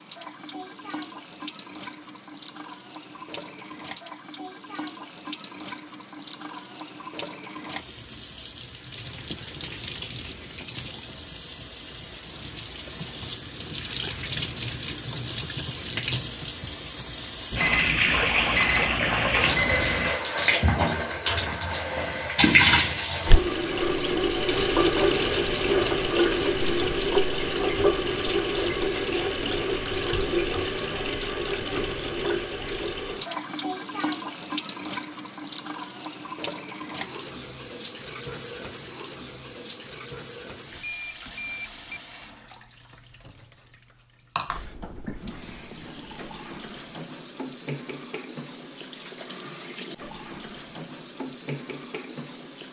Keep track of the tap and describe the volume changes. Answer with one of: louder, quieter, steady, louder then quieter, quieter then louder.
louder then quieter.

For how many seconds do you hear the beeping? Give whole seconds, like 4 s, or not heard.
4 s.